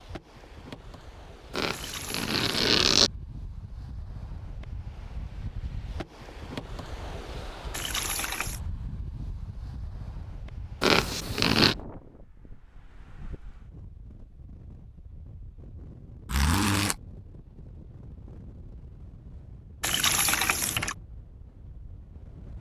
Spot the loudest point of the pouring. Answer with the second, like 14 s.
20 s.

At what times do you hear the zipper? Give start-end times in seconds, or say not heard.
1.5-3.1, 10.8-11.8, 16.2-16.9.